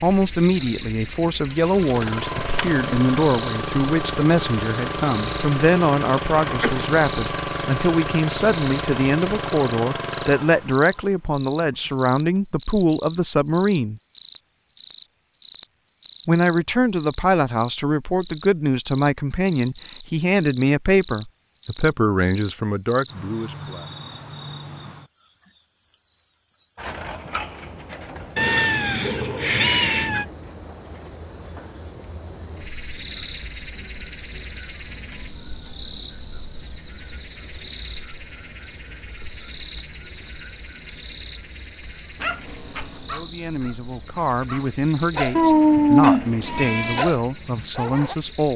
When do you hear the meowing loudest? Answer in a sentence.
The volume of the meowing peaks at 46 seconds.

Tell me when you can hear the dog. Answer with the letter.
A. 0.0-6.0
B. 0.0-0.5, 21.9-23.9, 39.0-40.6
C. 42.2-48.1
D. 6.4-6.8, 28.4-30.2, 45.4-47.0
C.